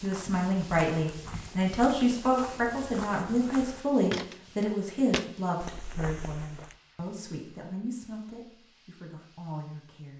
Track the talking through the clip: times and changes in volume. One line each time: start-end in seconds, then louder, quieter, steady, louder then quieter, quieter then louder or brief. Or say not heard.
0.0-10.1 quieter.